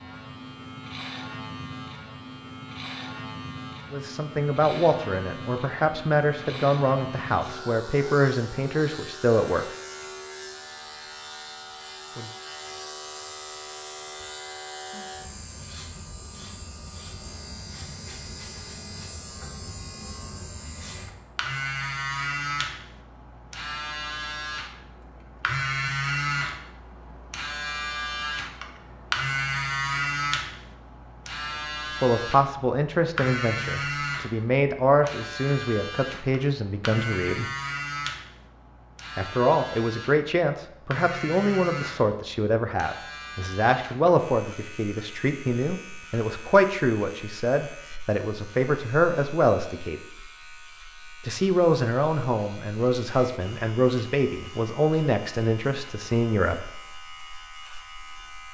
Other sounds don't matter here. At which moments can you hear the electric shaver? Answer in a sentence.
You can hear the electric shaver from 0.0 to 58.4 s.